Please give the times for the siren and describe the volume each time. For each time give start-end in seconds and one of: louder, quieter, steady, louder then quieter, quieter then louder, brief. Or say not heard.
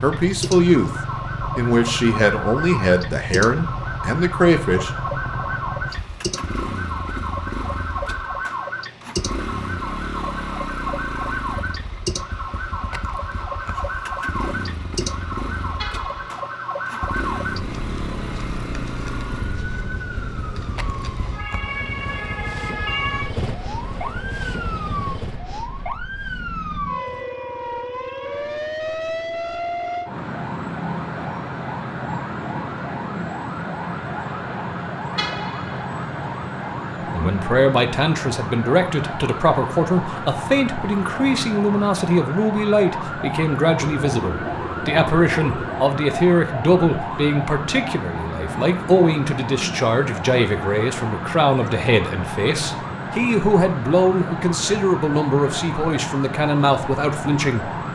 0.0-57.9 steady.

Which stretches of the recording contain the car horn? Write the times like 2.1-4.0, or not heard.
15.8-16.3, 35.1-35.9.